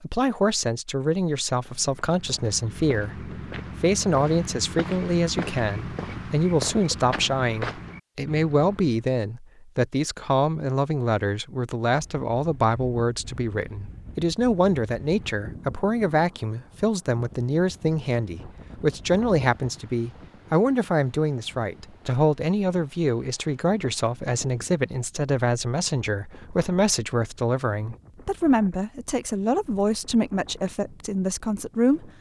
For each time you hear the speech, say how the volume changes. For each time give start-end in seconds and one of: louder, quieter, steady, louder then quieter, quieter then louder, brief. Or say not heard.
0.0-32.1 steady.